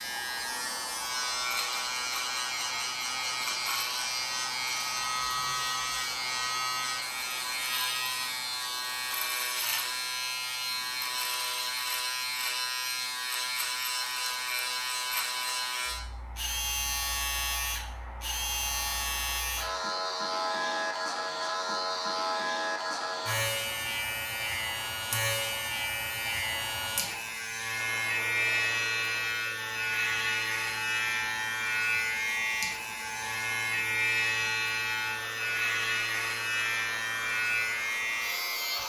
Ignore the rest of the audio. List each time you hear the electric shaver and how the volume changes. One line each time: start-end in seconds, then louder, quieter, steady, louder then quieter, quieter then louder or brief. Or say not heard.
0.0-38.8 steady.